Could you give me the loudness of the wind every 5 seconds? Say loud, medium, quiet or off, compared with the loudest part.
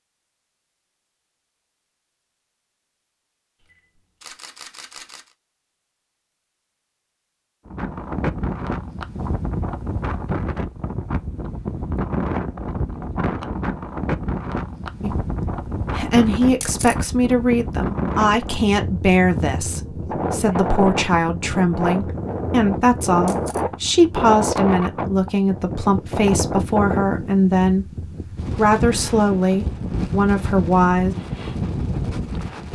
off, loud, loud, loud, loud, loud, loud.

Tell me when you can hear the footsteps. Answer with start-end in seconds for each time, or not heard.
not heard.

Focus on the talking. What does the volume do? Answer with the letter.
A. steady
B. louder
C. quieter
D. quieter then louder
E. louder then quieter
A.